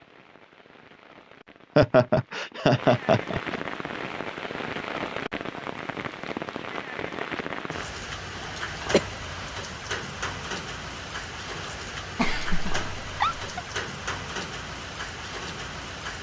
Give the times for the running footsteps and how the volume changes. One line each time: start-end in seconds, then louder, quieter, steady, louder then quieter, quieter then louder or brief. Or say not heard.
not heard.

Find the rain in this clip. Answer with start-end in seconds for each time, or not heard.
0.0-16.1.